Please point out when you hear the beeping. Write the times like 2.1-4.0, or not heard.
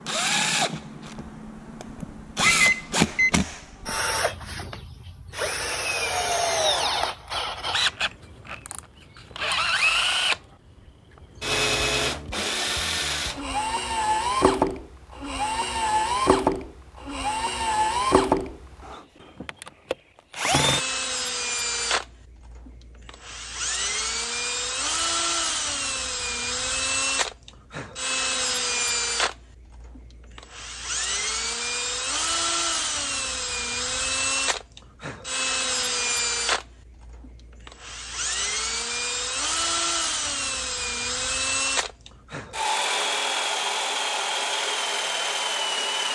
2.5-3.3.